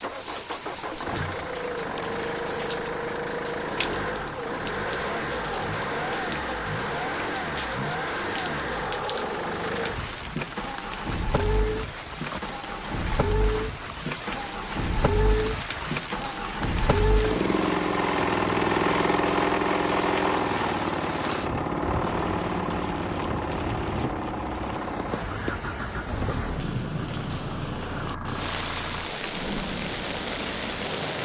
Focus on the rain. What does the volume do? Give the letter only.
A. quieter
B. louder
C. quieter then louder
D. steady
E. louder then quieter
B.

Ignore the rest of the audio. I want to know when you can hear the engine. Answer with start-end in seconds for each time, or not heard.
0.0-31.2.